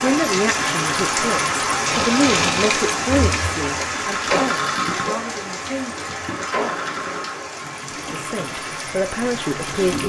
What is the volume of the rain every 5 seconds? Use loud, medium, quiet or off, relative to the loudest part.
loud, medium.